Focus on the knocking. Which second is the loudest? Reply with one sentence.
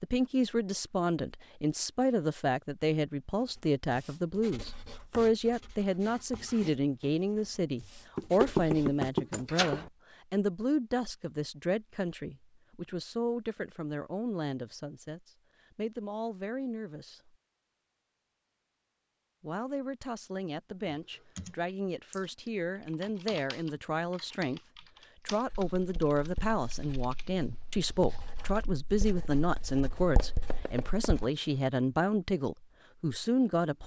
The volume of the knocking peaks at 9 seconds.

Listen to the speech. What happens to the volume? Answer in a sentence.
The volume of the speech goes down, then up.